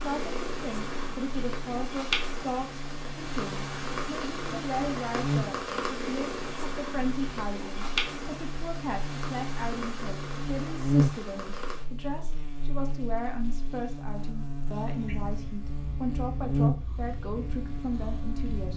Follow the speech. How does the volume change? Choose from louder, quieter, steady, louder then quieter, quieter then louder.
steady.